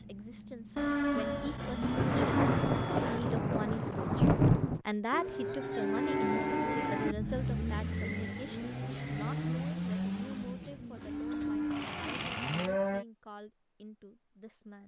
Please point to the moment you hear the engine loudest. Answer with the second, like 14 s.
10 s.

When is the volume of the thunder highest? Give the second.
4 s.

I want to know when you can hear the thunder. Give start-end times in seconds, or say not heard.
1.8-4.8.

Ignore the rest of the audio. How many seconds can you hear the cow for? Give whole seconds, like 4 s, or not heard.
7 s.